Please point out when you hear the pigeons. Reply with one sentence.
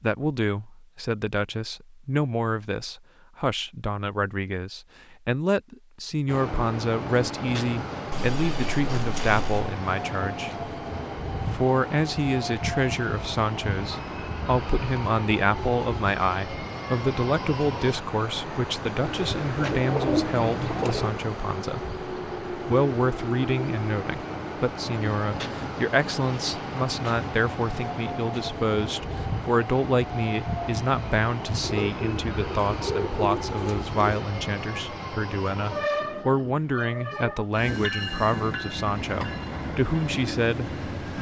The pigeons can be heard from 8.1 to 9.8 s, from 19.0 to 21.1 s and from 31.6 to 34.2 s.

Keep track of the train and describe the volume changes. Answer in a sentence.
The loudness of the train stays about the same.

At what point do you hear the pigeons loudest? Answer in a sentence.
The volume of the pigeons peaks at 20 seconds.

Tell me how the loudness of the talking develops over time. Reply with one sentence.
The volume of the talking stays about the same.